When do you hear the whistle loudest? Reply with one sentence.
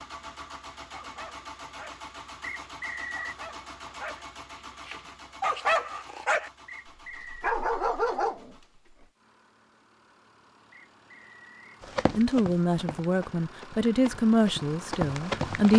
The loudest moment of the whistle is at 3 seconds.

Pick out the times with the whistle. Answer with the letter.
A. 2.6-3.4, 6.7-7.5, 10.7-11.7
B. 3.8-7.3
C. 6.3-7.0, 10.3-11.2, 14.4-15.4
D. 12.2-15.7
A.